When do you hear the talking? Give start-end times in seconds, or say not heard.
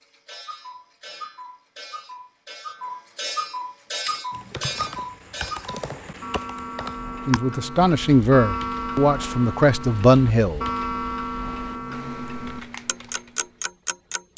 7.2-10.7.